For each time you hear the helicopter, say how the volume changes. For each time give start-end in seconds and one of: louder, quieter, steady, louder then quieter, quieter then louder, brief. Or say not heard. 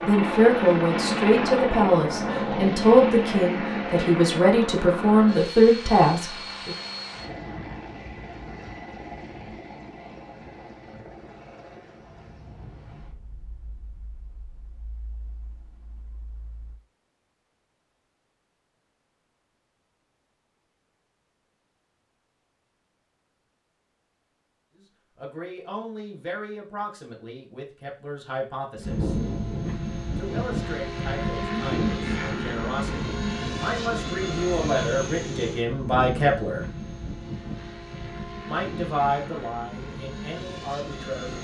0.0-16.8 quieter
28.8-41.3 quieter.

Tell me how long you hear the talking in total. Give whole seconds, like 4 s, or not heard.
20 s.